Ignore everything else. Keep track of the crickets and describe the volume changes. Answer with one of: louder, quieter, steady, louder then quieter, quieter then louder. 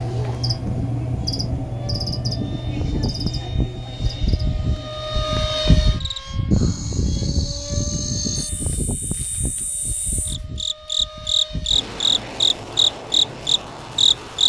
quieter then louder.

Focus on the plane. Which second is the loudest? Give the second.
6 s.